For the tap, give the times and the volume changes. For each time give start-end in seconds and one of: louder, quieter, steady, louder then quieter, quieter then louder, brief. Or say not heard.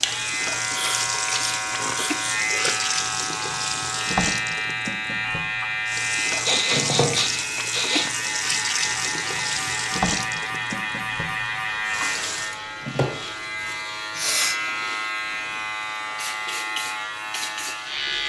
0.0-18.2 quieter.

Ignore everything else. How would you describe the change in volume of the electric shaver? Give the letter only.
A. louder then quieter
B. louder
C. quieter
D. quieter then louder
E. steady
E.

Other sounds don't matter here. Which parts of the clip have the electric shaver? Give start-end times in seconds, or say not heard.
0.0-18.2.